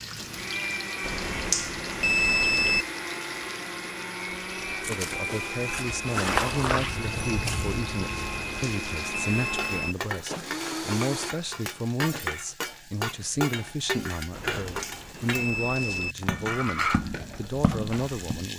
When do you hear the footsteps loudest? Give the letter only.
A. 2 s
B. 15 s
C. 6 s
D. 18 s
C.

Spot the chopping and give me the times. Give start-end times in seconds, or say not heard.
not heard.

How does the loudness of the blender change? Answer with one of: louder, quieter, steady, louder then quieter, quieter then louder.
steady.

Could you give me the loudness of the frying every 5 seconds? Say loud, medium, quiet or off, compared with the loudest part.
medium, medium, loud, loud.